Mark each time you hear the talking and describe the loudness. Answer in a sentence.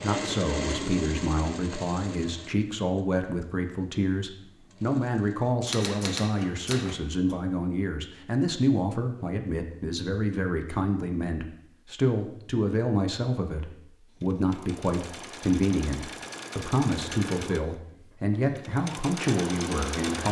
The talking can be heard from 0.0 to 20.2 s, at a steady volume.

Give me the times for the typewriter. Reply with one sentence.
You can hear the typewriter from 5.6 to 7.4 s.